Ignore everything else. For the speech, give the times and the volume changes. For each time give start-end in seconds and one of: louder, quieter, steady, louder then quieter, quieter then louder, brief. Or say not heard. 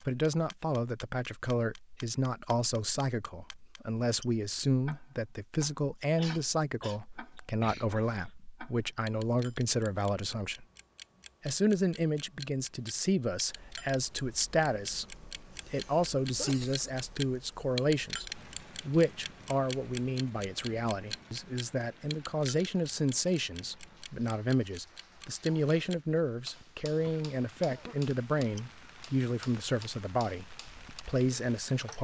0.1-10.7 steady
11.4-31.9 steady.